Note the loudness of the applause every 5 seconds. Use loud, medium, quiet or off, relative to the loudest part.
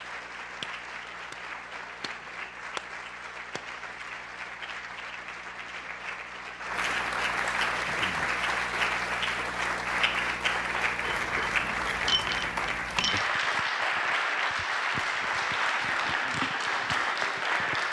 medium, loud, loud, loud.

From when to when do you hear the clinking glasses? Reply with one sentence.
You can hear the clinking glasses from 11.0 to 13.3 s.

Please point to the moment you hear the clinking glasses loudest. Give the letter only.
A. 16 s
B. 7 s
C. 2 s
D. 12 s
D.